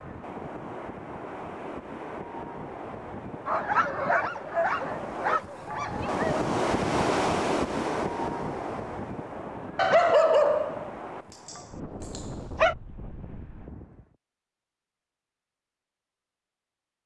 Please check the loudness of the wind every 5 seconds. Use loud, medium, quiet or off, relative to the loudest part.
medium, loud, quiet, off.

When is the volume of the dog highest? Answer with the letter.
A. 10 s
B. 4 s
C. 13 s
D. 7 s
A.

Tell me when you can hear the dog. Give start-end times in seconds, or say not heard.
3.5-6.4, 9.8-12.8.